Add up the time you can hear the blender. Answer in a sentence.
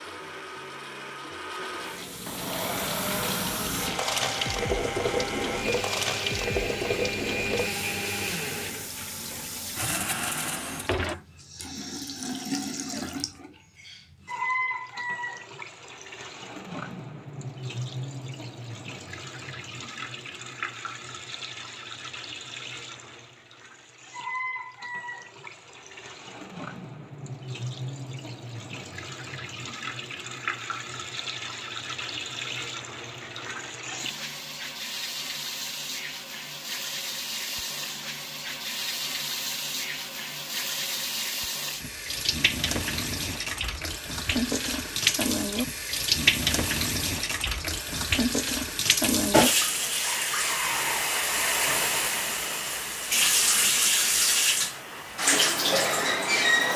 You can hear the blender for 11 seconds altogether.